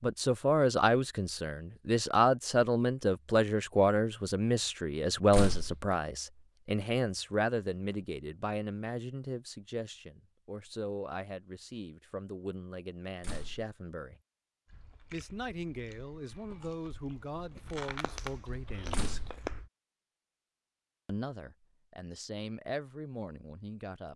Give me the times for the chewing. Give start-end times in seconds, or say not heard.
14.7-19.7.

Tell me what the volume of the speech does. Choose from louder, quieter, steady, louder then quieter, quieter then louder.
quieter.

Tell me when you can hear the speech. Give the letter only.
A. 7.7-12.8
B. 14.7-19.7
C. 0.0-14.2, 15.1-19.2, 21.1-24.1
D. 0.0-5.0
C.